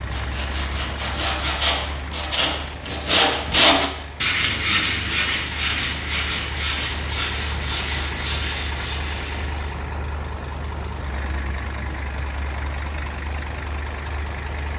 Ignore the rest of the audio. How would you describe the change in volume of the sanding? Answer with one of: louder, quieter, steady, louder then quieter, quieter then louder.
louder then quieter.